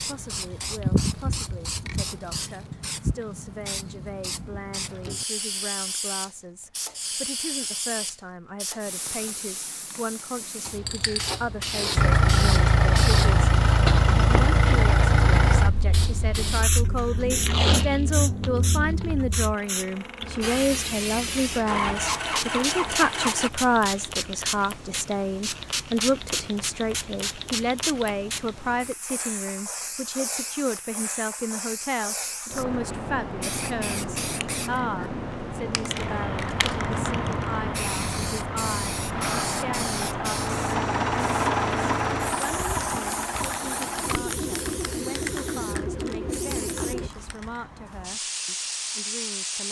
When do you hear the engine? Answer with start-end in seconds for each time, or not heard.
11.9-23.5, 36.0-47.1.